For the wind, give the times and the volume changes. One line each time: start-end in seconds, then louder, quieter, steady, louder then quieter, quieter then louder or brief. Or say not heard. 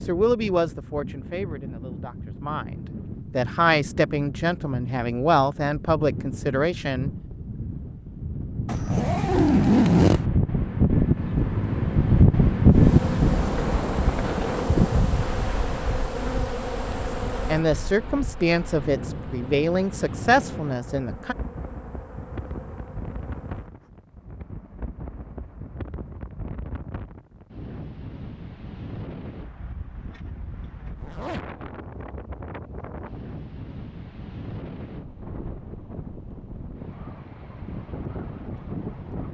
0.0-39.2 louder then quieter.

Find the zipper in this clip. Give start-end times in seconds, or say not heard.
8.7-10.3, 13.6-15.1, 30.9-31.6.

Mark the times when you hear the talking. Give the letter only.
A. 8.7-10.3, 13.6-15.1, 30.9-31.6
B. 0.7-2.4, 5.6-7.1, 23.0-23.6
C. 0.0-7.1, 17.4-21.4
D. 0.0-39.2
C.